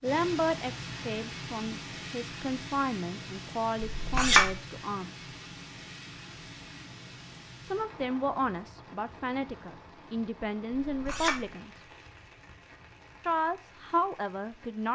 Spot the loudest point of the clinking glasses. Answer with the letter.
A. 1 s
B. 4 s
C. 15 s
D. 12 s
B.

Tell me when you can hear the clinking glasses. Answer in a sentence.
You can hear the clinking glasses from 3.8 to 4.5 s and from 10.8 to 11.4 s.